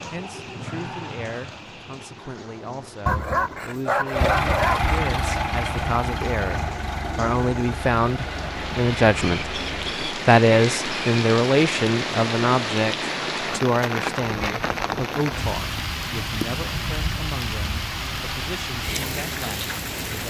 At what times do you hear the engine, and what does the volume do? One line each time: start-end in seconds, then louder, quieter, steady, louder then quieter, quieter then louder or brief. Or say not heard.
4.1-10.0 quieter.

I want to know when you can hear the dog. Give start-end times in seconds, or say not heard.
3.0-5.0.